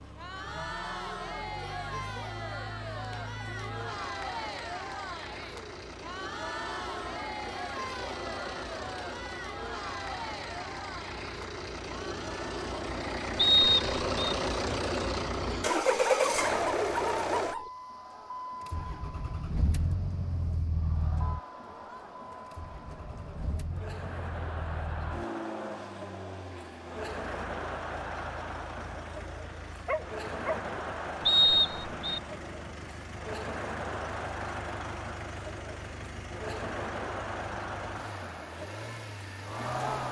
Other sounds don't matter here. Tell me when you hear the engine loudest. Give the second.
16 s.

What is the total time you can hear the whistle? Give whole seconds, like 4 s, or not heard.
2 s.